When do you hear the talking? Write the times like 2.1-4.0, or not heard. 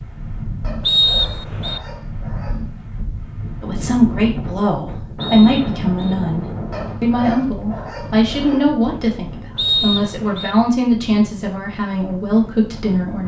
3.6-13.2.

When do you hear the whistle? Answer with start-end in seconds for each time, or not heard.
0.8-1.8, 5.2-6.2, 9.6-10.6.